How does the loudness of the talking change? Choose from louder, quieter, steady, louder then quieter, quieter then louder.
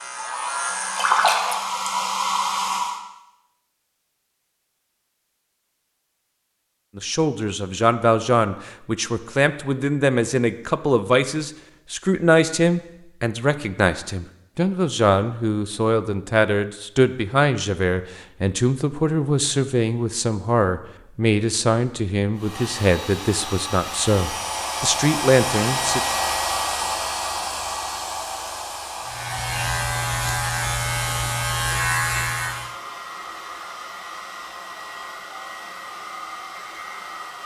steady.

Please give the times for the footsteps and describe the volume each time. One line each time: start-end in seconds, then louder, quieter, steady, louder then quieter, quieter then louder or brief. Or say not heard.
not heard.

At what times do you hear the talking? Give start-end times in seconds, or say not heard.
7.0-26.0.